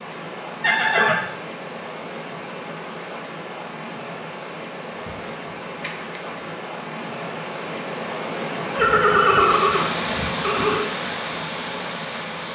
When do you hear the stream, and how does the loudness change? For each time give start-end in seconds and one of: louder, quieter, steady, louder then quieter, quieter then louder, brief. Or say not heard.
0.0-12.5 louder.